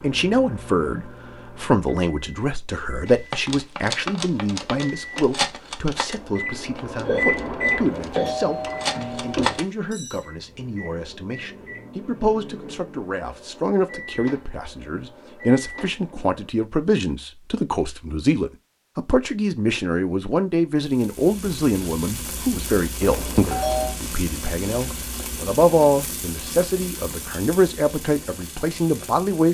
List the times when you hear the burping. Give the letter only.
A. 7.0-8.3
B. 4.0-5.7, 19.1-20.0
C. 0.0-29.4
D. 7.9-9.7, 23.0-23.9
A.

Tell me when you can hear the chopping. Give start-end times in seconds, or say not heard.
not heard.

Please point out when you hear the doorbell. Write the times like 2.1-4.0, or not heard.
7.9-9.7, 23.0-23.9.